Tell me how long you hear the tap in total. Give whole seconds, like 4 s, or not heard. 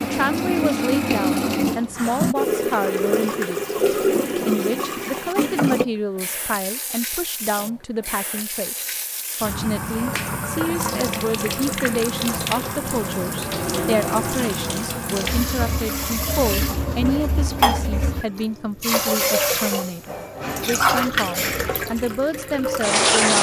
23 s.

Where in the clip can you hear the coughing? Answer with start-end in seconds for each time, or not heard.
not heard.